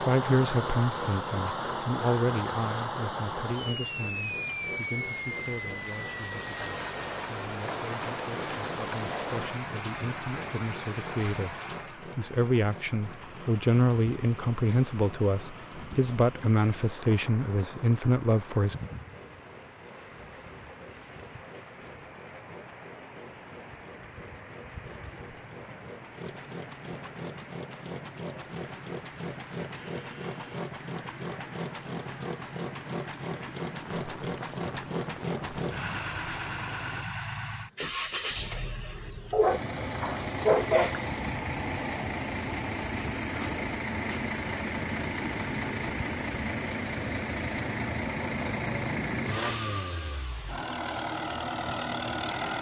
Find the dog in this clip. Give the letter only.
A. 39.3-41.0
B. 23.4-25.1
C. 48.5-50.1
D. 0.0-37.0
A.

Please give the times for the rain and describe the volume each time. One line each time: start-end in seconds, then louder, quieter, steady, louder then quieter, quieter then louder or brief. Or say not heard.
0.0-37.0 quieter.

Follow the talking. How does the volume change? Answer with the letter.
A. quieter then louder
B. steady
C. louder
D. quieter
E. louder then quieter
A.